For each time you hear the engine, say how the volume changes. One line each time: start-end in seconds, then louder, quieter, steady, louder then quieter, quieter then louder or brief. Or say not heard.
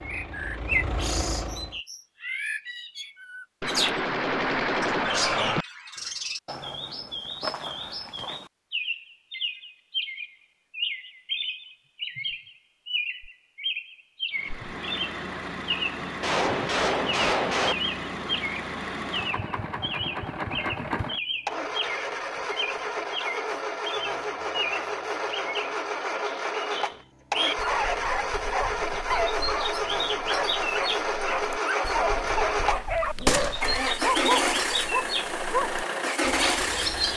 0.0-1.8 brief
14.3-37.1 louder.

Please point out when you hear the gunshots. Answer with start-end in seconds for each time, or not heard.
3.6-5.7, 16.2-17.8, 33.2-33.8.